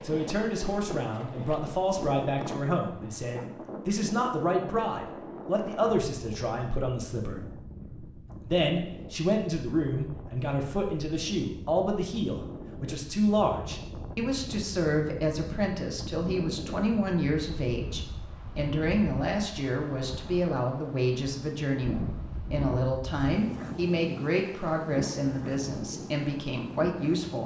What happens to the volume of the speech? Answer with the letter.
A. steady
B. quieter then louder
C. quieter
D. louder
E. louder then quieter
A.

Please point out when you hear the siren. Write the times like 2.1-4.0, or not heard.
not heard.